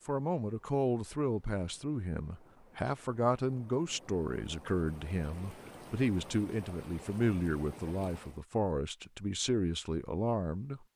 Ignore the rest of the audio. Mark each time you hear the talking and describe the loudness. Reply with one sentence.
The talking can be heard from 0.1 to 10.8 s, at a steady volume.